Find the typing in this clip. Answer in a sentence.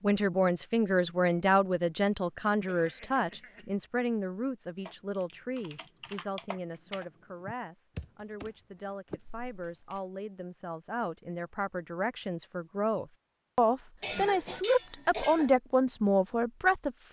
You can hear the typing from 4.8 to 8.5 s and from 9.1 to 10.0 s.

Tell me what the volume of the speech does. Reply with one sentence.
The volume of the speech goes down, then up.